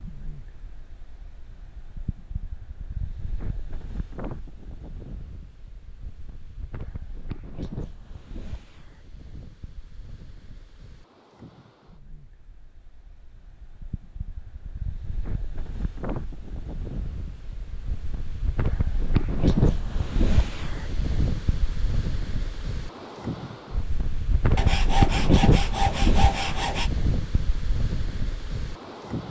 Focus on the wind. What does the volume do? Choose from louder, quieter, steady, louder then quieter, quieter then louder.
louder.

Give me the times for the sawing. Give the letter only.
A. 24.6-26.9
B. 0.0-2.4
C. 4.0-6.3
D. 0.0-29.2
A.